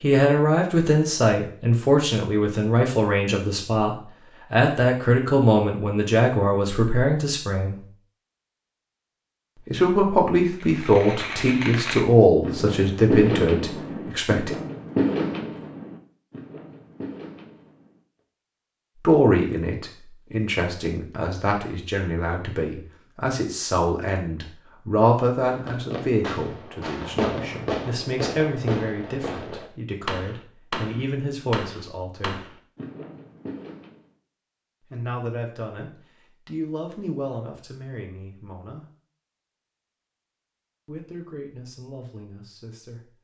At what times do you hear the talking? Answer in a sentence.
The talking can be heard from 0.0 to 7.8 s, from 9.7 to 14.5 s, from 19.0 to 32.5 s, from 34.9 to 38.9 s and from 40.9 to 43.1 s.